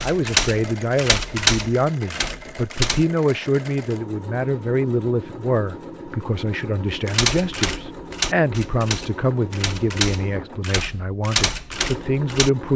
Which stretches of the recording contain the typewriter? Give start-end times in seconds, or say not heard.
0.0-3.0, 6.8-12.7.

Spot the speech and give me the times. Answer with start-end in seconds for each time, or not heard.
0.0-12.7.